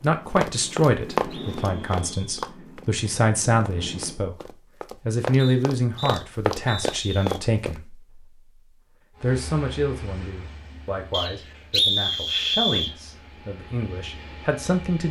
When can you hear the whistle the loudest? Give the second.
12 s.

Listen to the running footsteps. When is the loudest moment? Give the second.
1 s.